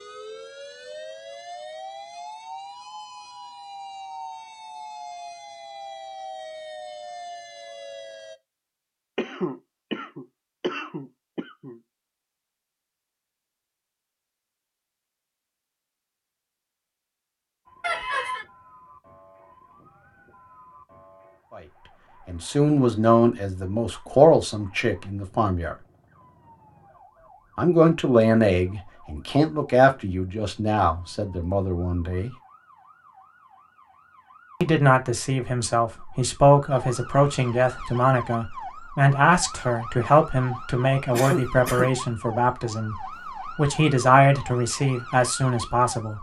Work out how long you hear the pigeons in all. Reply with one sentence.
The pigeons can't be heard in this clip.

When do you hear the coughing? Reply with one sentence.
You can hear the coughing from 9.2 to 11.8 s, from 17.8 to 18.4 s and from 41.1 to 41.9 s.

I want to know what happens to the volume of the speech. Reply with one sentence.
The loudness of the speech stays about the same.